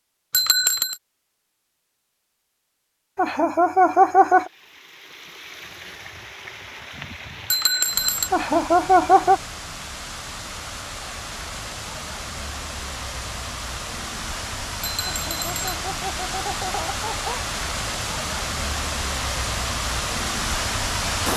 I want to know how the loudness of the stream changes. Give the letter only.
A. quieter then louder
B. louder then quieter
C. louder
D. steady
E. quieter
C.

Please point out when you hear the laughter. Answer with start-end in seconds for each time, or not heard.
3.1-4.5, 8.3-9.4, 15.1-17.4.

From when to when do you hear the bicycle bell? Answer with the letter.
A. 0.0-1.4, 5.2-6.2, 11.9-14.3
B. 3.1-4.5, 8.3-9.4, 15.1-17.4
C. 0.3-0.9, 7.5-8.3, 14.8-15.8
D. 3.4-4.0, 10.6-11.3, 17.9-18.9
C.